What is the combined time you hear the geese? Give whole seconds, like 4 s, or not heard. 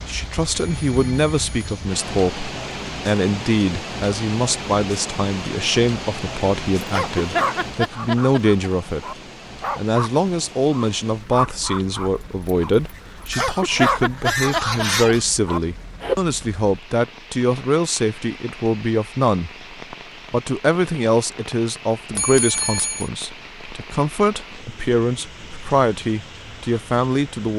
2 s.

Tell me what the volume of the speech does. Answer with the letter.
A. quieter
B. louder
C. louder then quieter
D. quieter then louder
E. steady
E.